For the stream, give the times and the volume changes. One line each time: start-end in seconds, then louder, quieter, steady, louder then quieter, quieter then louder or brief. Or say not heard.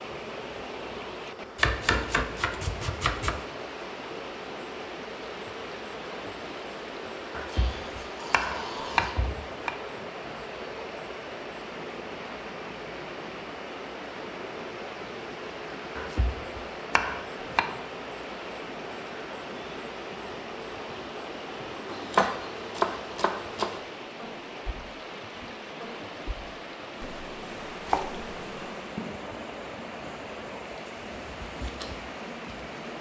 0.0-32.9 steady.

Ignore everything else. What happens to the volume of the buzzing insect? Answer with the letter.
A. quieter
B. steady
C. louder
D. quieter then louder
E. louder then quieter
B.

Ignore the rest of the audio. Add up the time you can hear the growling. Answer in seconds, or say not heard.
2 s.